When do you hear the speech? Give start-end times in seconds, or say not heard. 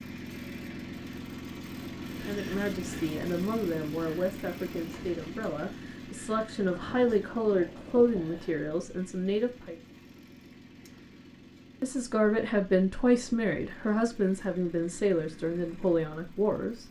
2.2-9.8, 11.8-16.8.